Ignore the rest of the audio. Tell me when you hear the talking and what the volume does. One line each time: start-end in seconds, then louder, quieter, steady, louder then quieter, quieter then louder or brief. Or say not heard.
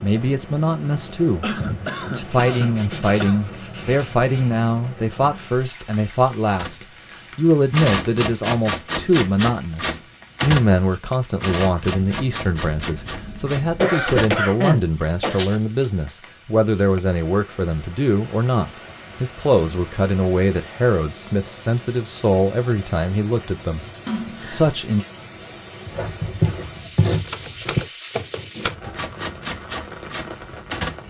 0.0-25.1 steady.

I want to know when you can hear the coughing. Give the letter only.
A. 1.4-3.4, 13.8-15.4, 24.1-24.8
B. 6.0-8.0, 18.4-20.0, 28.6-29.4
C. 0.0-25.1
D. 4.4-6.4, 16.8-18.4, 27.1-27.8
A.